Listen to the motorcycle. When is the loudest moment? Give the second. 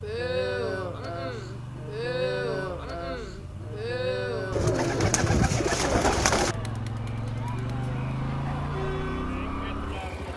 8 s.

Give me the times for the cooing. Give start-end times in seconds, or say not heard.
4.5-6.5.